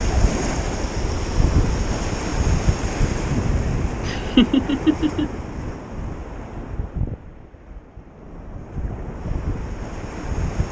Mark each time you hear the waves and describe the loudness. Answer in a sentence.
The waves can be heard from 0.0 to 10.6 s, getting quieter.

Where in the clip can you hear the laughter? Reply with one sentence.
You can hear the laughter from 4.0 to 5.3 s.